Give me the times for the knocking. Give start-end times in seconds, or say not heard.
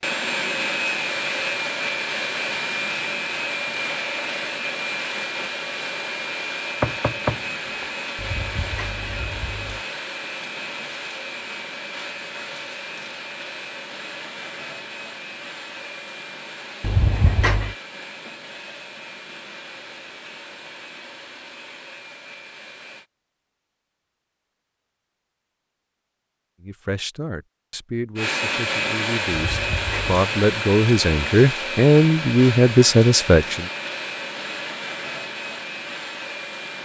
6.8-7.8.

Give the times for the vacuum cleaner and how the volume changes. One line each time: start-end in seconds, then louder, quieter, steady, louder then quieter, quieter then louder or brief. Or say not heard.
0.0-23.1 quieter
28.1-36.8 quieter.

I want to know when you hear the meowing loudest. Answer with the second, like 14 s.
17 s.